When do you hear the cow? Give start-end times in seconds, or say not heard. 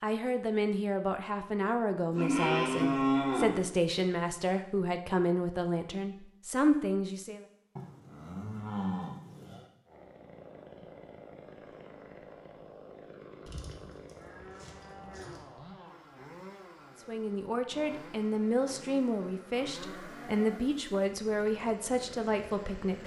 2.1-3.6, 7.8-9.7, 13.4-15.4, 19.8-20.9.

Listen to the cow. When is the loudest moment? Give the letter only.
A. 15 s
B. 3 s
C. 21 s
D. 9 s
B.